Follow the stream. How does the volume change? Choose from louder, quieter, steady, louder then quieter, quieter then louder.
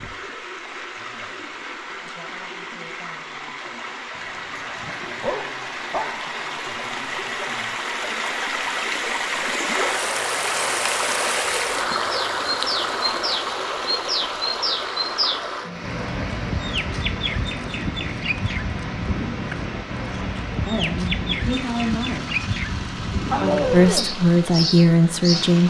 louder then quieter.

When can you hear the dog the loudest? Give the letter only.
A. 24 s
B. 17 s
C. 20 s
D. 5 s
A.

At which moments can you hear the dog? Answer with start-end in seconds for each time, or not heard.
4.2-6.1, 23.3-24.1.